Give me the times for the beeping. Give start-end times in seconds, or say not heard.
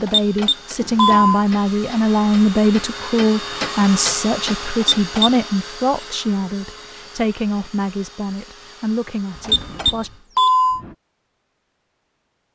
0.1-1.4, 4.8-5.3, 9.4-10.8.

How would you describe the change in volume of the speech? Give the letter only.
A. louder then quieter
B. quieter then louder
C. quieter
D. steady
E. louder
C.